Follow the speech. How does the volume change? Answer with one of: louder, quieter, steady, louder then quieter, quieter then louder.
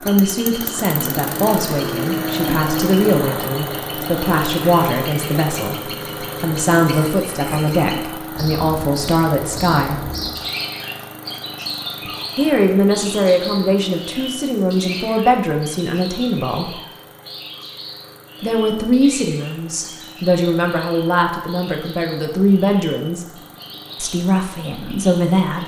steady.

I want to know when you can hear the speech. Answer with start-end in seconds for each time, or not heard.
0.0-10.1, 12.3-16.8, 18.4-25.6.